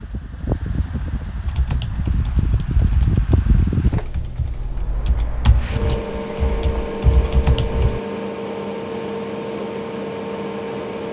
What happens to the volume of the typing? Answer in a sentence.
The volume of the typing goes down, then up.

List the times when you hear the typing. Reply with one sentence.
The typing can be heard from 1.4 to 8.0 s.